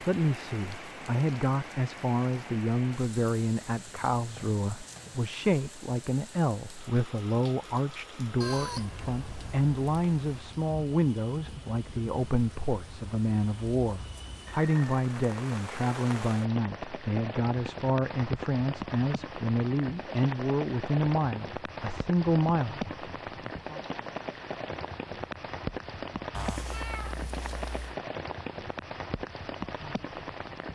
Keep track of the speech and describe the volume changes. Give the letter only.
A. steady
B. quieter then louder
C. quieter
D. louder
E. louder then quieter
A.